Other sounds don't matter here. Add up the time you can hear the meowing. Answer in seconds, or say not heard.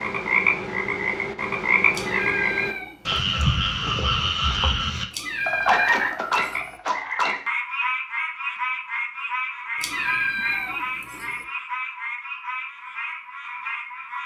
5 s.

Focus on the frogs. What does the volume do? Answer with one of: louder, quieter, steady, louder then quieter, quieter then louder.
quieter.